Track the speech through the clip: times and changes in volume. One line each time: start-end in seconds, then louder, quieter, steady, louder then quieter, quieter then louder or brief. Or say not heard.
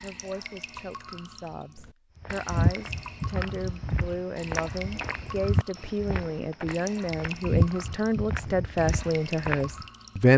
0.0-10.3 louder.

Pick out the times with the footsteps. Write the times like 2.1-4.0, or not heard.
2.2-9.8.